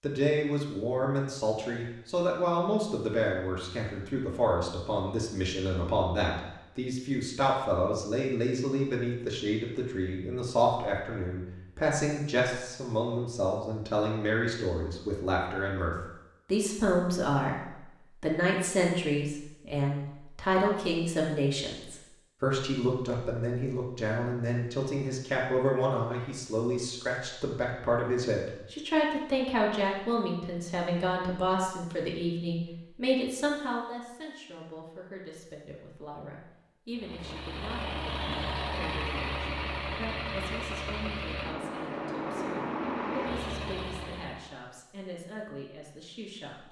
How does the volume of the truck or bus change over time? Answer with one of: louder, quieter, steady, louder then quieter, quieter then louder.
steady.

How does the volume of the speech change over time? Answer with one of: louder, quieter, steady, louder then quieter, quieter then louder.
quieter.